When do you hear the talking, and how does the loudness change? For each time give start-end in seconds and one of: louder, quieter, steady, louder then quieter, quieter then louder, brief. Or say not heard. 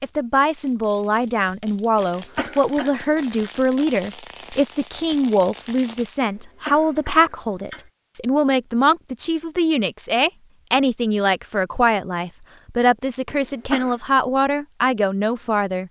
0.0-15.8 steady.